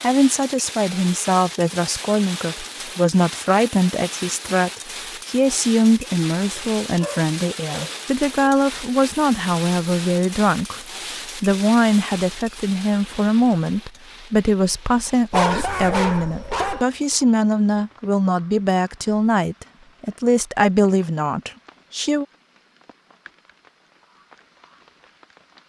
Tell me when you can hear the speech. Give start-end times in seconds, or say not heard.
0.0-22.2.